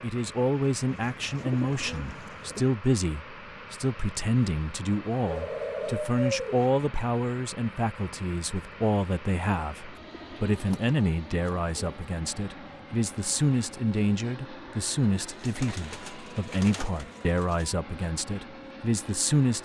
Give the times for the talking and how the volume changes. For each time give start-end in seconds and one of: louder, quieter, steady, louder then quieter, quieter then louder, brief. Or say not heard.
0.0-19.5 steady.